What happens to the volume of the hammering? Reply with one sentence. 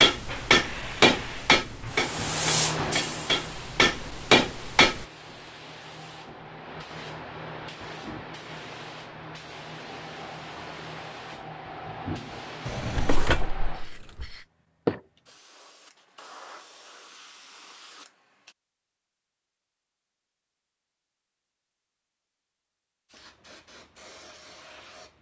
The loudness of the hammering goes down, then up.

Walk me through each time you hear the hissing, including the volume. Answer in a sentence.
You can hear the hissing from 0.1 to 18.6 s, getting quieter then louder; and briefly from 23.1 to 25.1 s.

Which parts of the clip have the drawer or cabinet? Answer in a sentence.
You can hear the drawer or cabinet from 12.7 to 14.3 s.